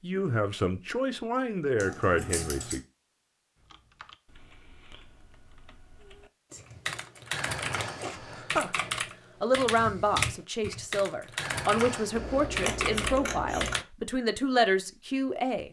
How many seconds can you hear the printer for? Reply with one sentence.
You can't hear the printer here.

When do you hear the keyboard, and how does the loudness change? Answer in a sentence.
You can hear the keyboard from 3.5 to 13.8 s, getting louder.